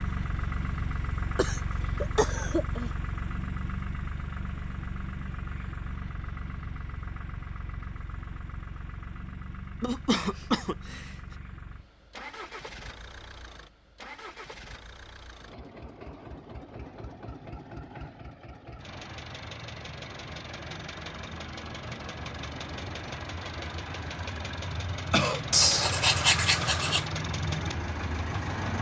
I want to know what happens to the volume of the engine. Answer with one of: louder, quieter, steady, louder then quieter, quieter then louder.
quieter then louder.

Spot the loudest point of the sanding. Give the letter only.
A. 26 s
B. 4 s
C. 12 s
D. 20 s
A.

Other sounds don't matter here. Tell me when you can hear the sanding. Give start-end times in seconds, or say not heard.
25.5-27.1.